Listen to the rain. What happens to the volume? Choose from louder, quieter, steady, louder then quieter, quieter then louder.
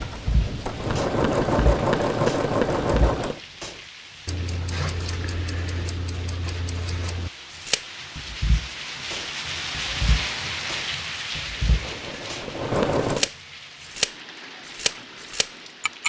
louder then quieter.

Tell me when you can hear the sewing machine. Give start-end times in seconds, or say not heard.
0.0-3.4, 11.5-13.3.